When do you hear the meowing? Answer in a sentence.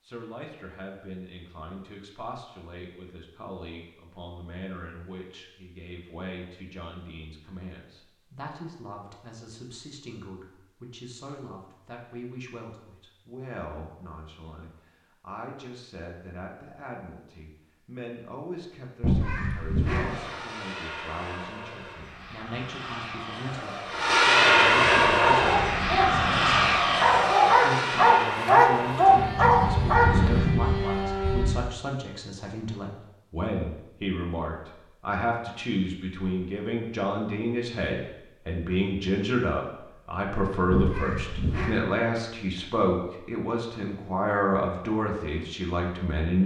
You can hear the meowing from 19.0 to 20.1 s and from 40.7 to 41.8 s.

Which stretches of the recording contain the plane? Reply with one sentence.
The plane can be heard from 19.9 to 31.6 s.